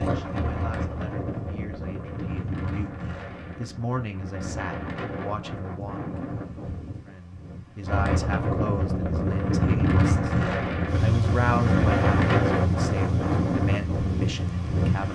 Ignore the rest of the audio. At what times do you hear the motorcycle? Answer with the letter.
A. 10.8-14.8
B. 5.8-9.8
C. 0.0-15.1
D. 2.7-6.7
A.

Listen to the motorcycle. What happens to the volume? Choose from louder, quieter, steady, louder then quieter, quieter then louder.
quieter.